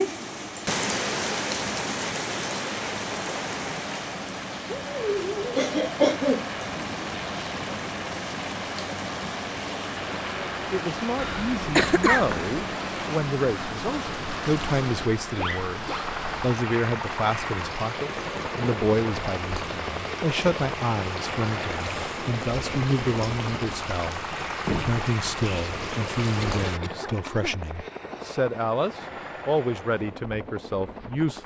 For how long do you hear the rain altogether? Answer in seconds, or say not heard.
27 s.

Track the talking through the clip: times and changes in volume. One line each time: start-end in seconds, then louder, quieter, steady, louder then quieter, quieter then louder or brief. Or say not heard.
10.3-31.4 steady.